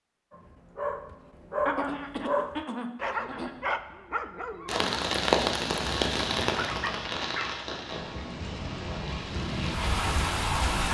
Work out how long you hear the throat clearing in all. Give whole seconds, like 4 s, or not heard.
2 s.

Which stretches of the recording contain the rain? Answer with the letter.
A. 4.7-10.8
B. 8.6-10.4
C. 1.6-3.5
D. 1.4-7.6
A.